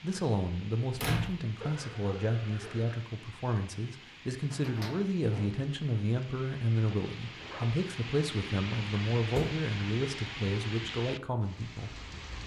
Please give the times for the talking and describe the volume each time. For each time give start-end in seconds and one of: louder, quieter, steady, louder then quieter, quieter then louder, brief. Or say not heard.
0.0-11.9 steady.